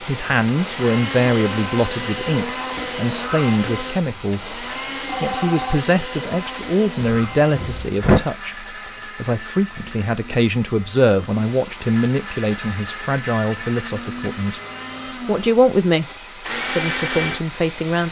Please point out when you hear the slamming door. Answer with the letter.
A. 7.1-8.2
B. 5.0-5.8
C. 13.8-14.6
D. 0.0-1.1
A.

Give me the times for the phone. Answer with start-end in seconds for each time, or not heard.
5.0-5.8.